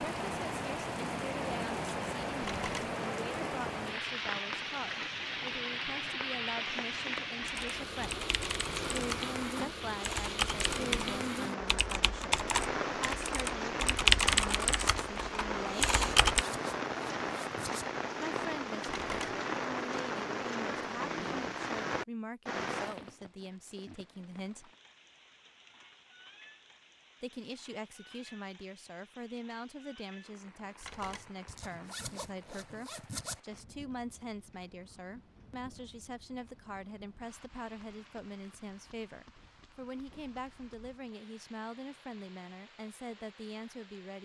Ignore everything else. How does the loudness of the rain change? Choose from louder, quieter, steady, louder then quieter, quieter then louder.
quieter.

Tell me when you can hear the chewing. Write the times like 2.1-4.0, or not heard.
not heard.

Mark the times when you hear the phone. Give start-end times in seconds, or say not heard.
2.4-3.0, 18.9-19.4, 30.8-31.3.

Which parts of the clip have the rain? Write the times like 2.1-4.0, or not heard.
0.0-44.1.